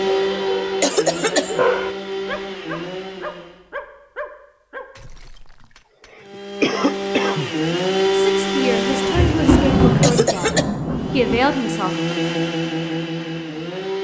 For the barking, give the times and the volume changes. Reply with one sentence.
You can hear the barking from 0.0 to 4.9 s, getting louder then quieter.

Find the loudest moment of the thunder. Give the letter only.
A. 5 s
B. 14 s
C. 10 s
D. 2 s
C.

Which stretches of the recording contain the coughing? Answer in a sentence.
The coughing can be heard from 0.8 to 1.6 s, from 5.0 to 5.5 s, from 6.2 to 7.5 s and from 10.0 to 10.7 s.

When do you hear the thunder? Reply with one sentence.
The thunder can be heard from 8.8 to 11.4 s.